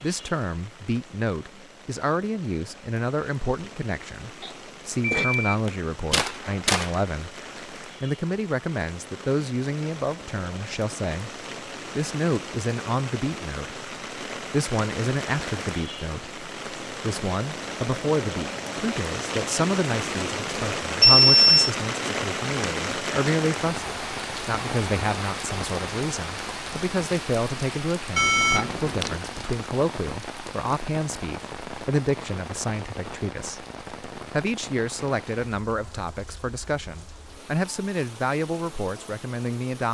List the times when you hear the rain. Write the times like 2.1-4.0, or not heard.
0.0-39.9.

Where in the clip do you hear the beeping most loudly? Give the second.
21 s.